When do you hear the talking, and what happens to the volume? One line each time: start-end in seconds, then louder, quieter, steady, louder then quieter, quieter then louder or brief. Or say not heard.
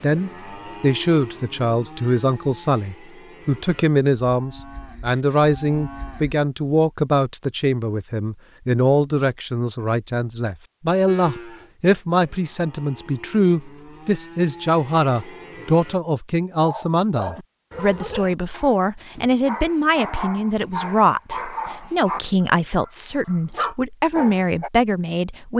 0.0-25.5 steady.